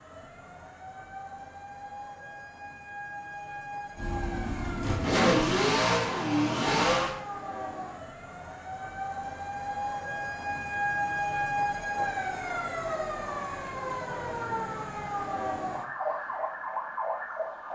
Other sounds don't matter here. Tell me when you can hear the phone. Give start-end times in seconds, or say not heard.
not heard.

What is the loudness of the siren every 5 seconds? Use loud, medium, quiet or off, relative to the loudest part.
medium, medium, loud, loud.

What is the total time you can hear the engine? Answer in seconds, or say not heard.
3 s.